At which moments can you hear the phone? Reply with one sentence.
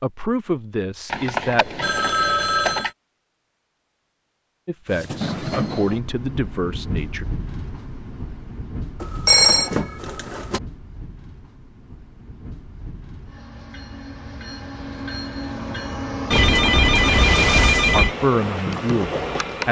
The phone can be heard from 1.1 to 2.9 s, from 9.0 to 10.6 s and from 16.3 to 18.1 s.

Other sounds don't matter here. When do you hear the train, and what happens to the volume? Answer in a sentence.
The train can be heard from 4.9 to 19.6 s, getting quieter then louder.